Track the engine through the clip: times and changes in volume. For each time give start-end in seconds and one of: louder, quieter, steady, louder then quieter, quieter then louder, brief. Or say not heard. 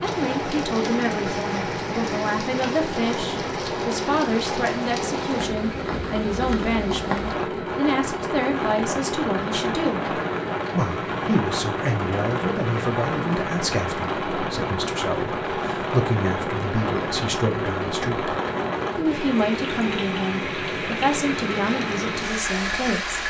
0.0-23.2 steady.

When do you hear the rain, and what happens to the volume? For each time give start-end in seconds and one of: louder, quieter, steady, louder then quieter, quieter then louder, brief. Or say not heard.
0.0-23.2 steady.